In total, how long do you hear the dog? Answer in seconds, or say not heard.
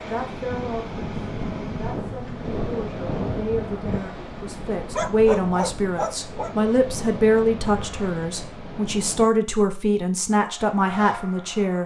2 s.